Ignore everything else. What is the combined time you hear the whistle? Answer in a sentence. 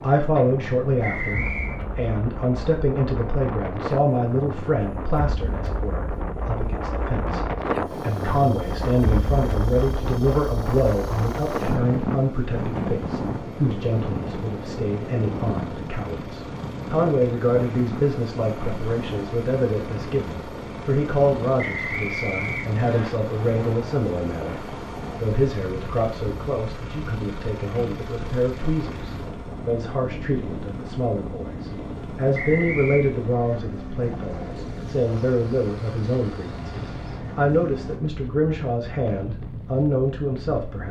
The whistle can be heard for 3 seconds in total.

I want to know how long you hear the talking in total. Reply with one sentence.
You can hear the talking for 41 seconds altogether.